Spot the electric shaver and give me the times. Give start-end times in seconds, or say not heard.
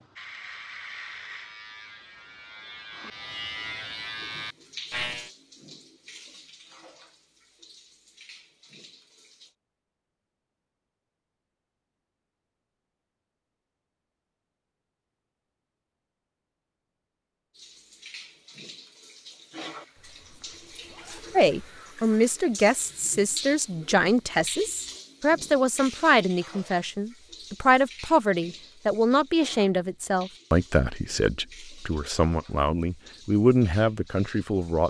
0.0-5.3.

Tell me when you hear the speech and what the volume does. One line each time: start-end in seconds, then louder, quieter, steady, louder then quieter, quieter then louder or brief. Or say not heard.
21.4-34.8 steady.